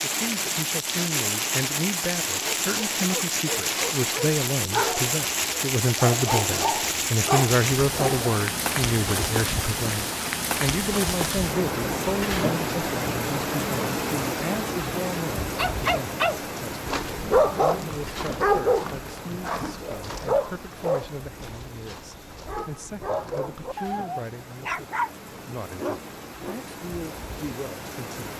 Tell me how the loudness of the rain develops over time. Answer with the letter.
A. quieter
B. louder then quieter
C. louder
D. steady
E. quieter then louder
A.